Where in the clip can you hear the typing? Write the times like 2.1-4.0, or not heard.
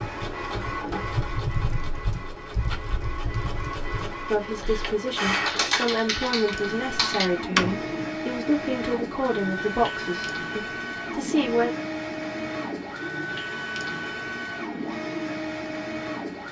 0.0-8.1.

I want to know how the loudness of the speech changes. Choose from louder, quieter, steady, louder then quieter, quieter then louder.
quieter.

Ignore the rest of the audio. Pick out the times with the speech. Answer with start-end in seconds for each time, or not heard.
4.3-11.7.